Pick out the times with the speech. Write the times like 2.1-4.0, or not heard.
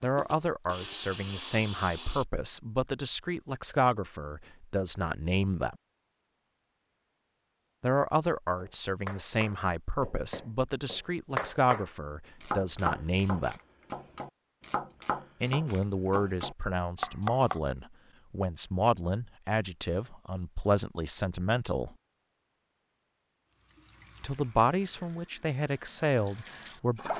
0.0-5.8, 7.8-13.6, 15.4-21.9, 24.2-27.1.